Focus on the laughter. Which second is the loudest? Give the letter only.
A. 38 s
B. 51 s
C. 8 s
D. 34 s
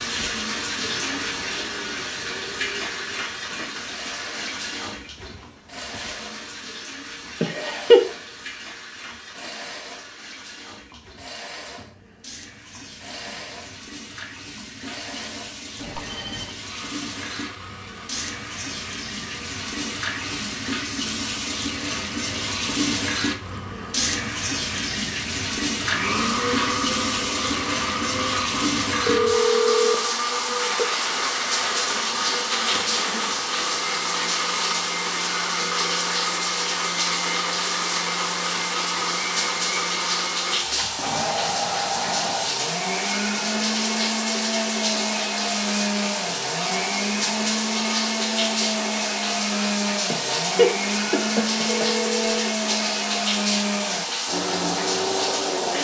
C.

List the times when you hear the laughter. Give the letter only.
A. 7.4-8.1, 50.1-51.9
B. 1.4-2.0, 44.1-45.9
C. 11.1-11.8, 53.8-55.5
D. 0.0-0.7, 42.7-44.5
A.